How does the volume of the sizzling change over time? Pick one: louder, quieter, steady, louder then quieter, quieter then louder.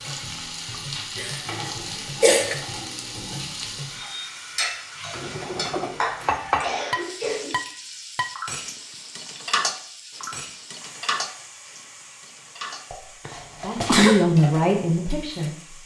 quieter.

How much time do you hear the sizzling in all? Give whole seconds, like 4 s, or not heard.
16 s.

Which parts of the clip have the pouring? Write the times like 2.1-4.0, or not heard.
not heard.